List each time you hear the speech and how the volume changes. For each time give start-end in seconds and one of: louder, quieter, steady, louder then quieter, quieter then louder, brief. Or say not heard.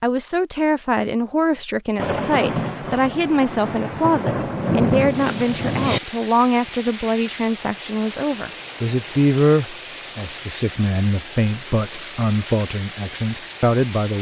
0.0-14.1 steady.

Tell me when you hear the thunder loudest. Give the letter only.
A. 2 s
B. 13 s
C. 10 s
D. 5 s
D.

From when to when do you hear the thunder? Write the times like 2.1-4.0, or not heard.
1.9-6.0.